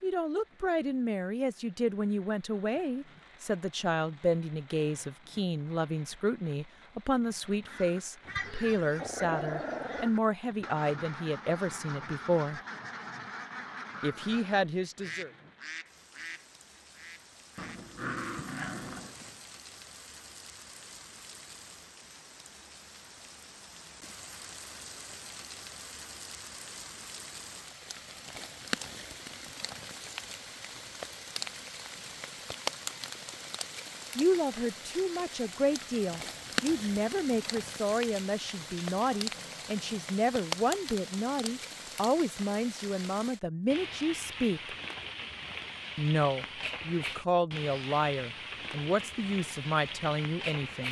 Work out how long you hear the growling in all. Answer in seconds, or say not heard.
5 s.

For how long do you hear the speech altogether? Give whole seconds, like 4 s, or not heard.
29 s.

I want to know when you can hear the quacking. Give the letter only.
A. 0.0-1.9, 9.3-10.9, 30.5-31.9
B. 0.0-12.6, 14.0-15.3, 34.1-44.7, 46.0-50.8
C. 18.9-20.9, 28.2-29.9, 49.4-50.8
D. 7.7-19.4
D.